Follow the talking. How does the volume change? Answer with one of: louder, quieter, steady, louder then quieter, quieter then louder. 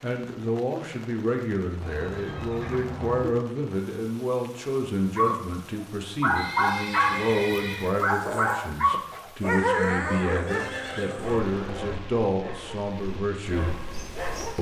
steady.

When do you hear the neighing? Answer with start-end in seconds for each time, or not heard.
1.8-3.3, 6.3-8.0, 10.4-12.0.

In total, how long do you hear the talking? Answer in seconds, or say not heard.
14 s.